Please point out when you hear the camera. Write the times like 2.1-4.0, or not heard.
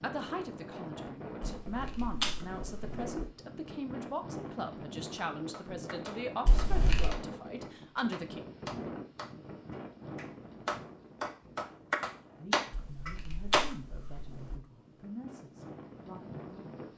1.4-3.0, 6.5-7.2, 12.7-14.6.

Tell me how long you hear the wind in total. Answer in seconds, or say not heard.
17 s.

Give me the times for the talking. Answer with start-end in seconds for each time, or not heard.
0.0-8.4, 12.3-16.8.